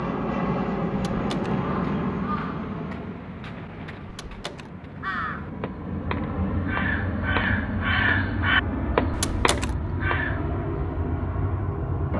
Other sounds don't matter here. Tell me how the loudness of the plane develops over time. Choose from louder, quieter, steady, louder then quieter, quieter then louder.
quieter then louder.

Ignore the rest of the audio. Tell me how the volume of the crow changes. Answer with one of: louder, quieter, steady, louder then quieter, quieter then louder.
louder.